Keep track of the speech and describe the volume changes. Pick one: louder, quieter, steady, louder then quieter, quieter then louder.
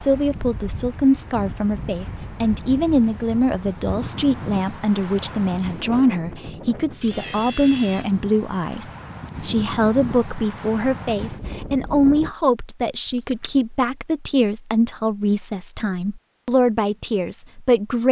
steady.